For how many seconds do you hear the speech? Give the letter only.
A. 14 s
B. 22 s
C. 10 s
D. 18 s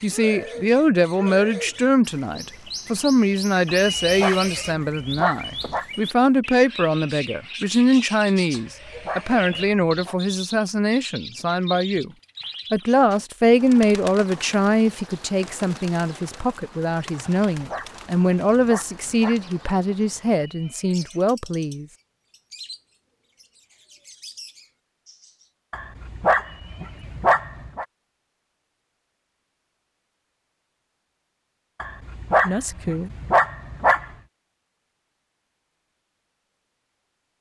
B.